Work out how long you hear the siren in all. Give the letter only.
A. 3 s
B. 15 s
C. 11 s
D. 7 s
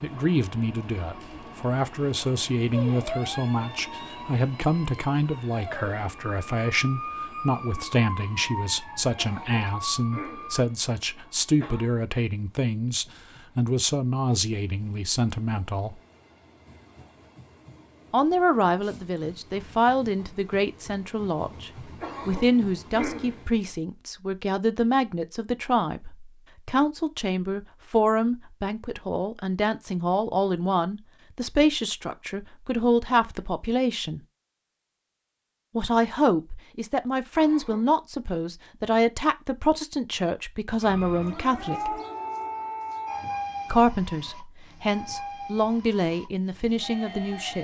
B.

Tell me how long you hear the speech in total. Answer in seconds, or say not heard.
42 s.